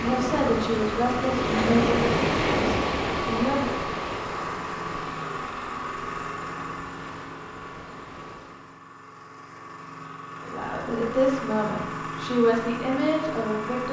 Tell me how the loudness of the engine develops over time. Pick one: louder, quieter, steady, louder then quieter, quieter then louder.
quieter then louder.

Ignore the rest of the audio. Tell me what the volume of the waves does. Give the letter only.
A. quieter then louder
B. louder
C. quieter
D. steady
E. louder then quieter
C.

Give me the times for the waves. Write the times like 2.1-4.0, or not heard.
0.0-8.8.